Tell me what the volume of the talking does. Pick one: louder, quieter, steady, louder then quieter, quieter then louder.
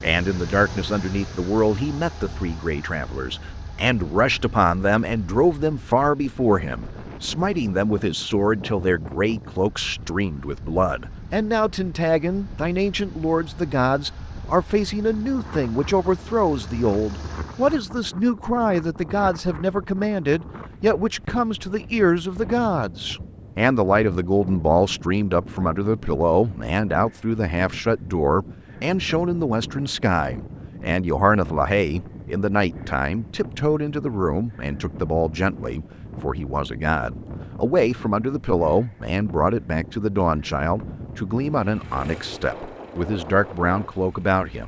steady.